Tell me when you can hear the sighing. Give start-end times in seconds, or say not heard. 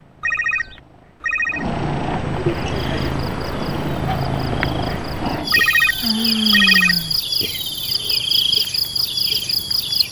2.4-3.2, 6.0-7.2.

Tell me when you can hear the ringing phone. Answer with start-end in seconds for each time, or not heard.
0.2-1.6, 5.5-7.2.